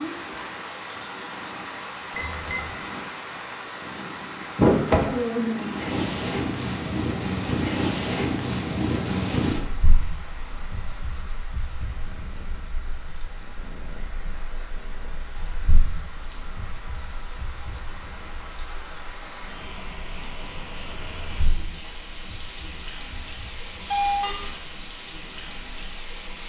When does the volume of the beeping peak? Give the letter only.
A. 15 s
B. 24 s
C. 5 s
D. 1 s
B.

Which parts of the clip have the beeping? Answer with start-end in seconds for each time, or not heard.
2.1-2.8, 23.8-24.4.